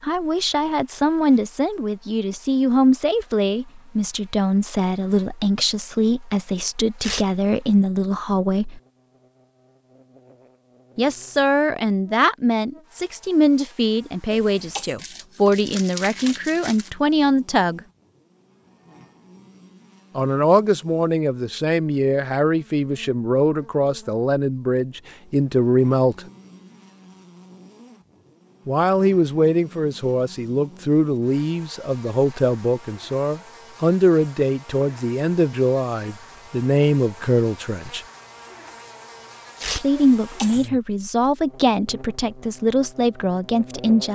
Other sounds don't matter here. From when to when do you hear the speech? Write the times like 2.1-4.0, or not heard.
0.0-8.8, 10.9-17.8, 20.1-26.2, 28.6-38.0, 39.8-44.1.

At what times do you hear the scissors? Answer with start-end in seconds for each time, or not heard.
not heard.